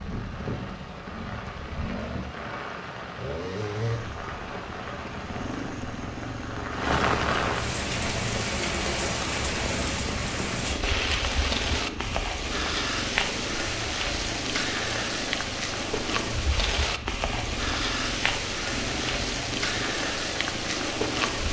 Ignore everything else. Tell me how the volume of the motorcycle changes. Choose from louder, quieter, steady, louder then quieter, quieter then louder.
steady.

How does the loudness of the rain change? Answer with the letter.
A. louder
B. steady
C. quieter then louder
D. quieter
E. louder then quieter
A.